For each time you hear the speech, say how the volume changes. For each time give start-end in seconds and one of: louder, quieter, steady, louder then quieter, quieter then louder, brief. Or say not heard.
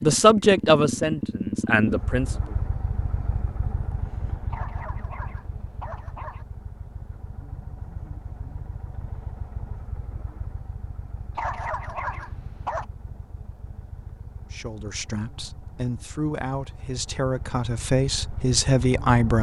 0.0-2.3 brief
14.5-19.3 louder.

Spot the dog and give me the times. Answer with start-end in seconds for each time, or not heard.
4.5-6.5, 11.3-12.8.